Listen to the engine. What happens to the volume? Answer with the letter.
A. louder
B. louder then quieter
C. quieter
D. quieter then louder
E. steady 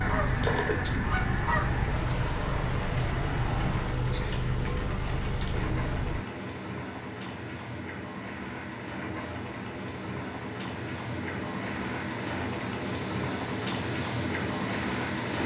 E.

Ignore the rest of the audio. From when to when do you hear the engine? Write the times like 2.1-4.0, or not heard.
0.0-6.2.